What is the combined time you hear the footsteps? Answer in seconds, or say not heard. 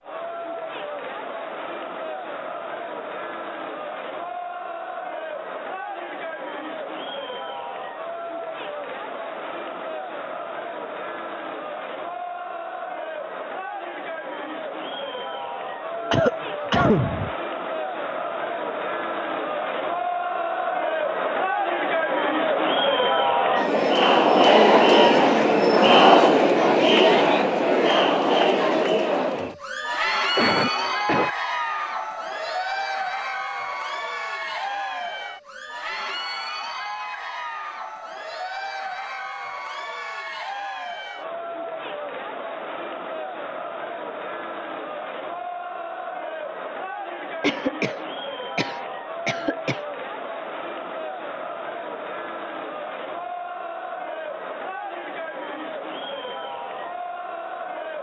not heard.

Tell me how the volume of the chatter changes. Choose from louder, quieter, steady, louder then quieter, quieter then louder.
louder then quieter.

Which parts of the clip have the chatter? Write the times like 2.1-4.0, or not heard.
0.0-57.9.